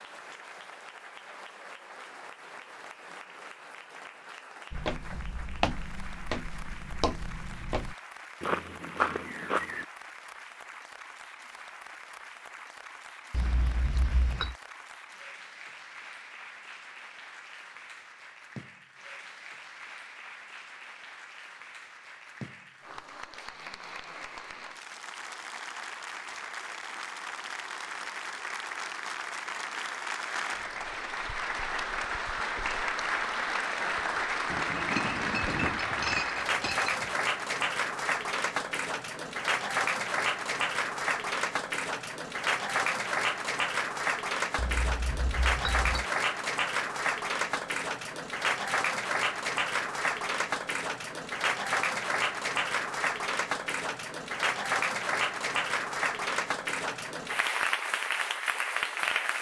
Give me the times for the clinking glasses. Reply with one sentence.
The clinking glasses can be heard from 13.3 to 14.6 s, from 34.5 to 37.1 s and from 44.5 to 46.0 s.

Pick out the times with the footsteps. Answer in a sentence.
The footsteps can be heard from 4.7 to 9.8 s.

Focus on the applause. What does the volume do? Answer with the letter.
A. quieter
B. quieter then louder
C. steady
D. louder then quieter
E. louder
E.